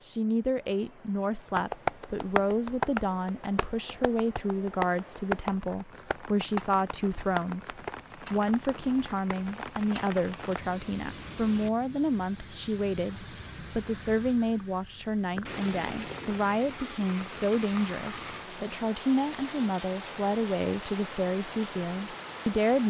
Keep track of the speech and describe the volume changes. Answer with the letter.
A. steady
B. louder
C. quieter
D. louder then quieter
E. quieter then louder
A.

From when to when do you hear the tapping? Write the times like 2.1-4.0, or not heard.
1.6-10.8.